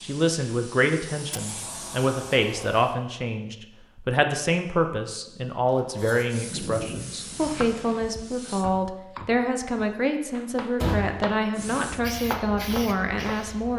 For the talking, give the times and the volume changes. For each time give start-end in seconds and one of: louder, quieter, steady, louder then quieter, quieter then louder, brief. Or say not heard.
0.0-13.7 steady.